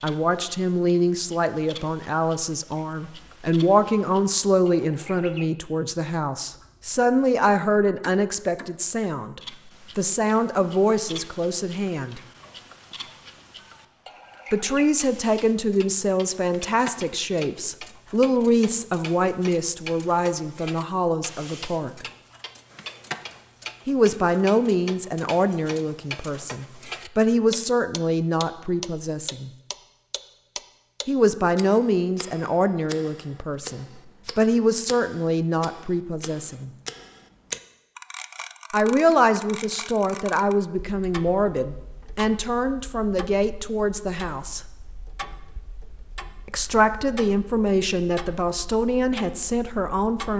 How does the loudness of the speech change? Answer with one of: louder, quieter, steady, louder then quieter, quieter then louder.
steady.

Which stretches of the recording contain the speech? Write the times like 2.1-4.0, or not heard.
0.0-12.2, 14.5-22.1, 23.9-29.5, 31.1-36.7, 38.7-44.6, 46.5-50.3.